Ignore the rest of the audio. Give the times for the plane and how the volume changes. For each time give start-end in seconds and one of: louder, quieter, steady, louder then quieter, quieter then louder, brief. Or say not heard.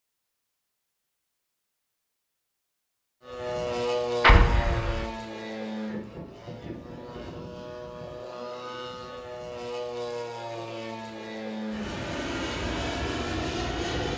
3.2-14.1 quieter then louder.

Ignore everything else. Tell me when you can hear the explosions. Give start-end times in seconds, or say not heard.
4.2-5.0.